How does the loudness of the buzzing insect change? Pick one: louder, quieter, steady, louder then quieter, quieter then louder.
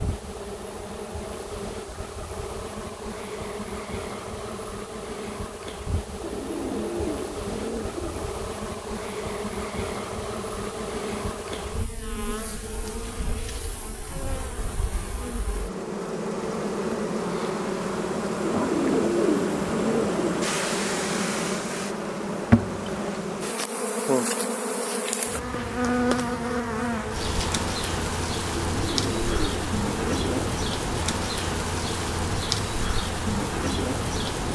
louder.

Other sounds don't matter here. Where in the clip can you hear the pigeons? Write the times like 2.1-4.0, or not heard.
6.2-8.2, 18.4-20.4, 28.6-30.4.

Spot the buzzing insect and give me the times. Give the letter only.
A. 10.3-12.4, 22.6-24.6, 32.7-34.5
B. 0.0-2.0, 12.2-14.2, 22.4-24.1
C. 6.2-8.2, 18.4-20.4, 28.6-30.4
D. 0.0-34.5
D.